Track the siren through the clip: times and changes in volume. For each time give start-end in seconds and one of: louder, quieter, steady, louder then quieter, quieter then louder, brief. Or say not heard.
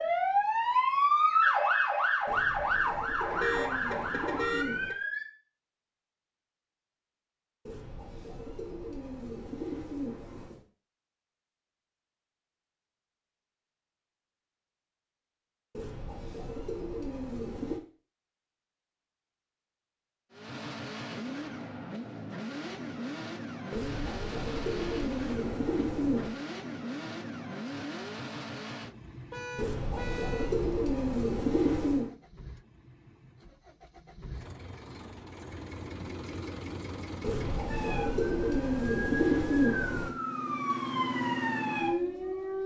0.0-5.2 quieter
37.6-42.6 louder.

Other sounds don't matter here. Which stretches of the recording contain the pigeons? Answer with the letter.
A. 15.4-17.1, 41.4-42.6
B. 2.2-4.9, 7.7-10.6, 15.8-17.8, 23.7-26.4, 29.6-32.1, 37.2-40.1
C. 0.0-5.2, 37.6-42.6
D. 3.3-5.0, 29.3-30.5
B.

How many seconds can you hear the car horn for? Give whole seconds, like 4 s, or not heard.
3 s.